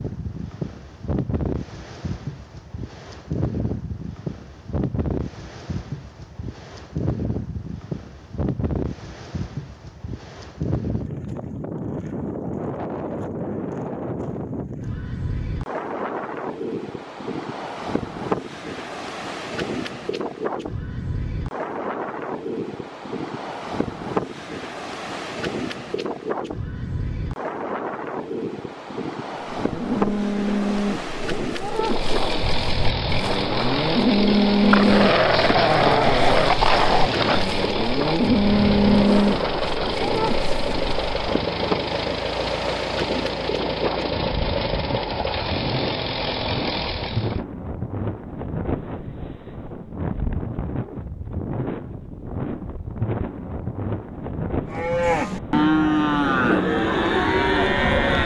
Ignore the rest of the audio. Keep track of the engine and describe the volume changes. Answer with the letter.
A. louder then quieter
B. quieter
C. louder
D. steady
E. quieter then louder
D.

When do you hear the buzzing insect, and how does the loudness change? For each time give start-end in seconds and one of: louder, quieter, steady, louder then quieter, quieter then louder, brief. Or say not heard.
not heard.